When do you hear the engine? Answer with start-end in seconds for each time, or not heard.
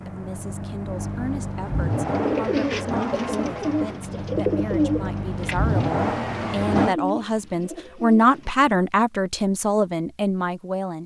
0.0-7.0.